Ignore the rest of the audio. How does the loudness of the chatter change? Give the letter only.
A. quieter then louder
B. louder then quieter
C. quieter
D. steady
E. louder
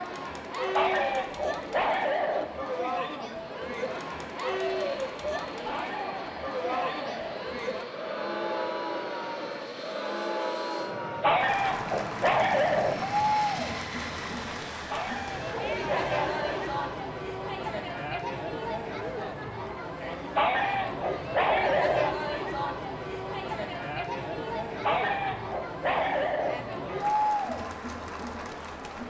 D.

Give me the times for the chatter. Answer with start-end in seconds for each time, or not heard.
0.0-29.0.